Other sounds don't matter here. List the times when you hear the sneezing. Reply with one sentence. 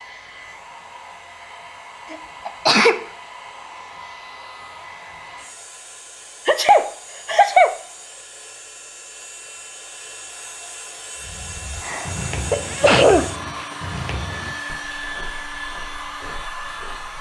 You can hear the sneezing from 2.1 to 3.0 s, from 6.5 to 7.8 s and from 11.8 to 13.7 s.